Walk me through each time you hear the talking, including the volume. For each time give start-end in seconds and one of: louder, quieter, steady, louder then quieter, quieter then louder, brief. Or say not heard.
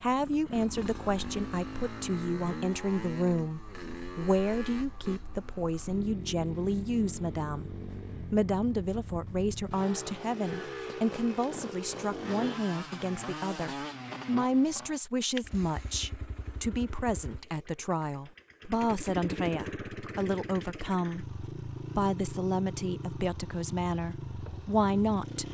0.0-25.4 steady.